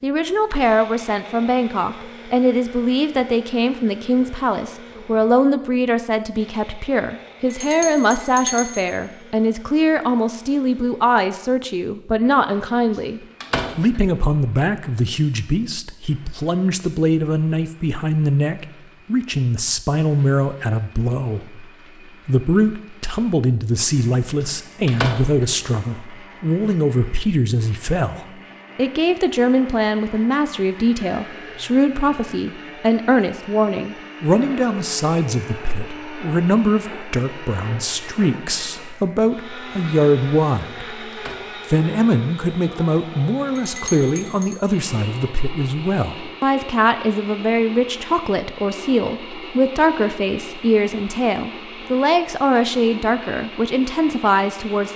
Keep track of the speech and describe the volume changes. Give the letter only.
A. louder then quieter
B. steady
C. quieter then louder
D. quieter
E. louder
B.